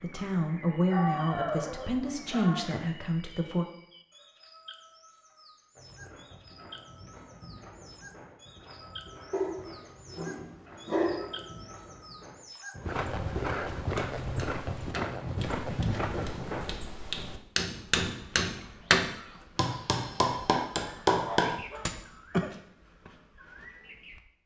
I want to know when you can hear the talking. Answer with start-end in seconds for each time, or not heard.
0.0-3.6.